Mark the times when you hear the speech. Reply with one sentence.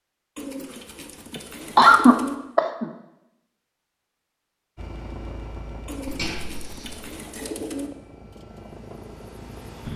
The speech can't be heard in this clip.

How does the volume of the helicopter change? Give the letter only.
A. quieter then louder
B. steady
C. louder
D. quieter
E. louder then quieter
A.